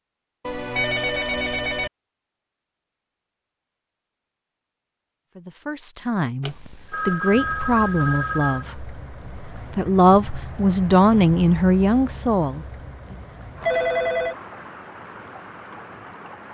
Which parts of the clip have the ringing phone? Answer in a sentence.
The ringing phone can be heard from 0.5 to 1.9 s, from 6.4 to 8.7 s and from 13.6 to 14.3 s.